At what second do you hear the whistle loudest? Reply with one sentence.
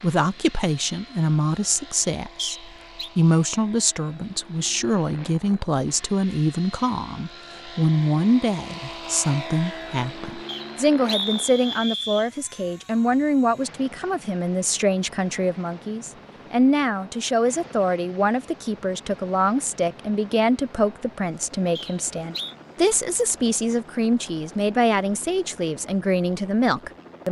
The volume of the whistle peaks at 11 seconds.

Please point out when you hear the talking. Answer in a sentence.
You can hear the talking from 0.0 to 27.2 s.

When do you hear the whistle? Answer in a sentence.
You can hear the whistle from 2.4 to 3.1 s, from 10.4 to 12.3 s and from 21.8 to 22.6 s.